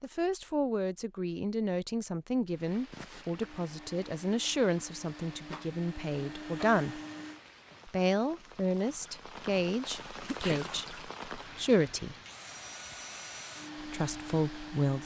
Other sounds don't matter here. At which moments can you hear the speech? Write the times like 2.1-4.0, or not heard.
0.0-7.0, 7.8-12.2, 13.8-15.0.